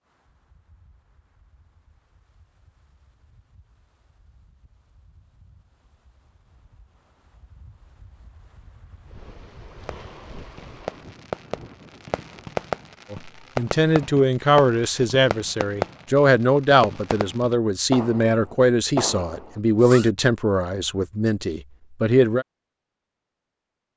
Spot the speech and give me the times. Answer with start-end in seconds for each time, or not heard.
13.1-22.4.